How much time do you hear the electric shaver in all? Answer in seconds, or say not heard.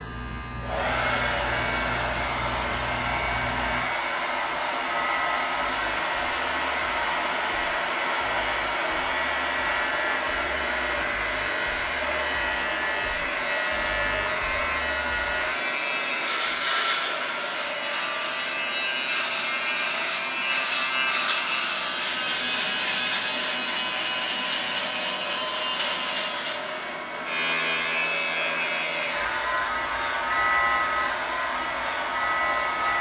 33 s.